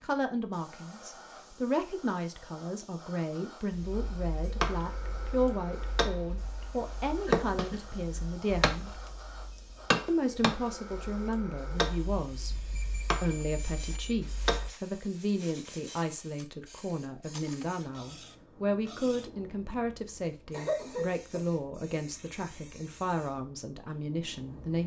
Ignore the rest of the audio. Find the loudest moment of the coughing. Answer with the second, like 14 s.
21 s.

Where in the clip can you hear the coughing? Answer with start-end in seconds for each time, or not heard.
7.2-8.2, 20.5-21.4.